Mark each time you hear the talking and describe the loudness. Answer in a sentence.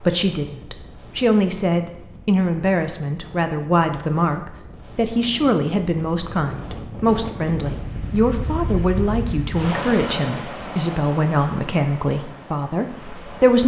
The talking can be heard from 0.0 to 13.6 s, at a steady volume.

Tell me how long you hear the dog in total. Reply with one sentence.
The dog can't be heard in this clip.